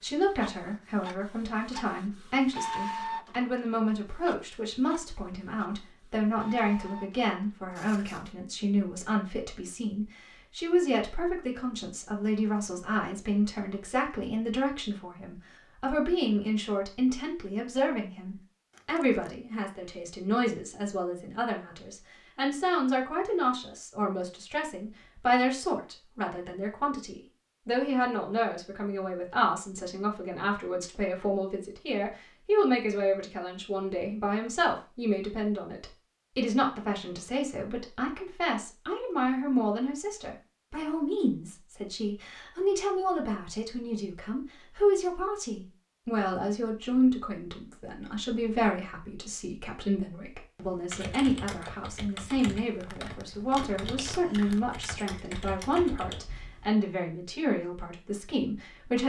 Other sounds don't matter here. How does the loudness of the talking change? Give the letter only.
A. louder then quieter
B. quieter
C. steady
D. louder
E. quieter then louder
C.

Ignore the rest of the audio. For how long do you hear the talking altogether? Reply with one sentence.
The talking can be heard for 59 seconds in total.